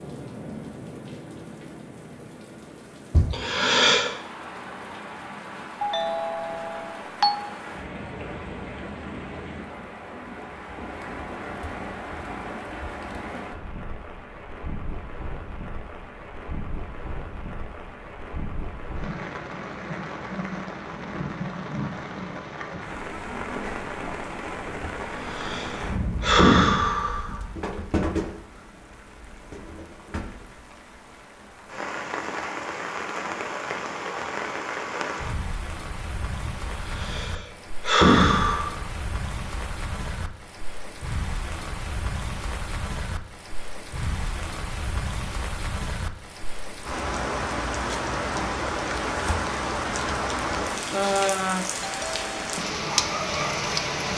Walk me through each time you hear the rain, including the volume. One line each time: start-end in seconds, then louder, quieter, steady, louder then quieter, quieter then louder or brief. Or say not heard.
0.0-54.1 louder.